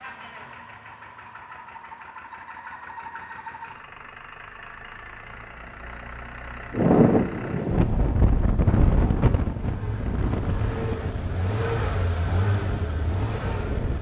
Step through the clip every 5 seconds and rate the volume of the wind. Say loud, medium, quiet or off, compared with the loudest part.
off, loud, medium.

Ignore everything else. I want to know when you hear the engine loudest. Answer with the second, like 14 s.
12 s.